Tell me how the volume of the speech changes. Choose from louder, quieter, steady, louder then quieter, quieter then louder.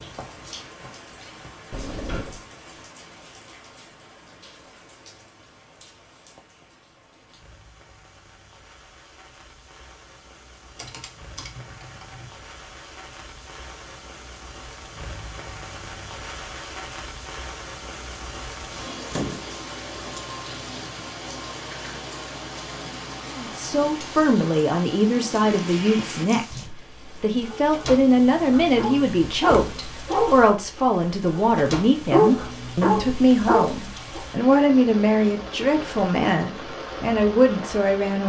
steady.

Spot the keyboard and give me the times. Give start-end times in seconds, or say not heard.
10.8-12.3.